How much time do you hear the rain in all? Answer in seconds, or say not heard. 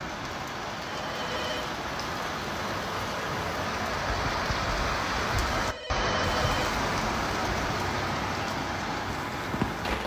10 s.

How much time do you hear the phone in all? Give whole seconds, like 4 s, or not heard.
2 s.